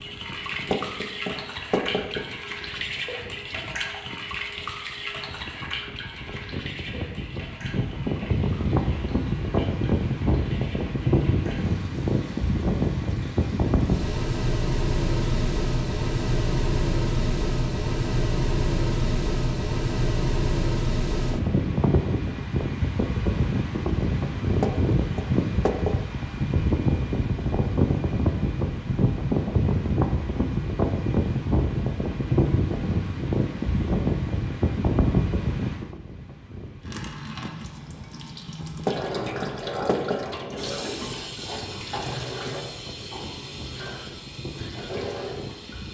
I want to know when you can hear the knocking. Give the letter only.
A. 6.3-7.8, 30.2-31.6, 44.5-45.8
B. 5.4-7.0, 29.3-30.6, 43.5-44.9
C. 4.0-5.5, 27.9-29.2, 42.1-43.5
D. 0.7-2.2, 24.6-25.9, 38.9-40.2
D.